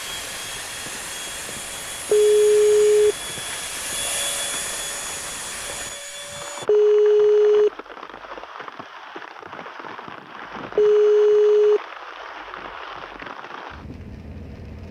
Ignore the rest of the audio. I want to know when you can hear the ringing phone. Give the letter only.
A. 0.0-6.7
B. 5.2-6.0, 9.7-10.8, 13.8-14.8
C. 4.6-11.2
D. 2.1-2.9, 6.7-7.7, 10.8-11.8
D.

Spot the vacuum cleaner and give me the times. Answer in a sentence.
The vacuum cleaner can be heard from 0.0 to 6.7 s.